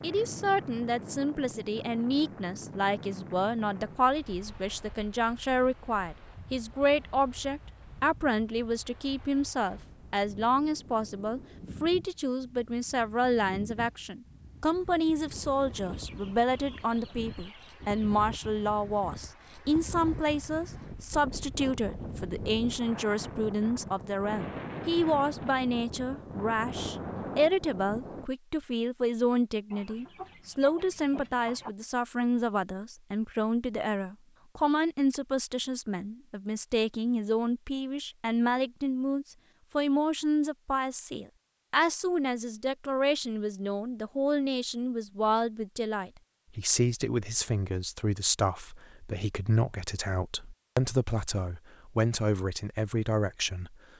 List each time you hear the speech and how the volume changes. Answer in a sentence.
You can hear the speech from 0.0 to 53.8 s, at a steady volume.